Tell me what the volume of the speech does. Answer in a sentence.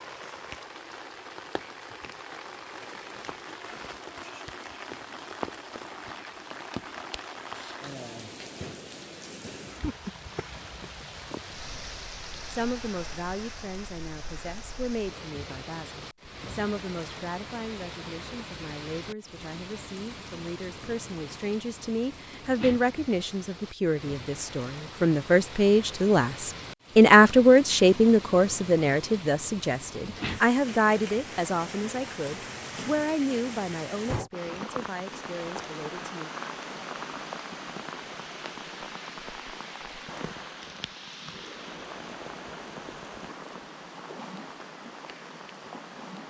The volume of the speech goes up, then down.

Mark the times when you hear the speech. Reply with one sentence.
You can hear the speech from 12.5 to 36.3 s.